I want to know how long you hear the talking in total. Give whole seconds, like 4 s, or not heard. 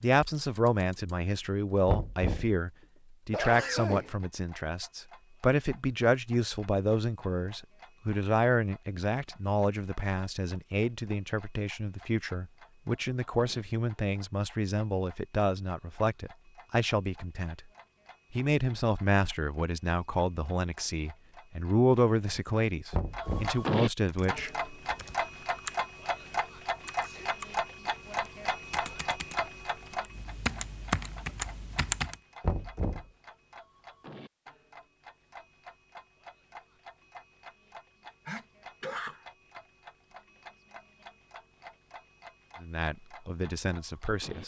26 s.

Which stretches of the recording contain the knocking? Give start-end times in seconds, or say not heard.
1.9-2.5, 22.9-23.6, 32.4-33.0.